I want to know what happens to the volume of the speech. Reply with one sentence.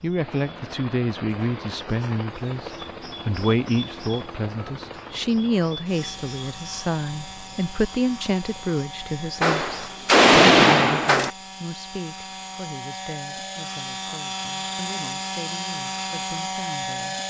The loudness of the speech goes down.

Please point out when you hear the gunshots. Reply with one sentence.
You can hear the gunshots from 9.4 to 11.3 s.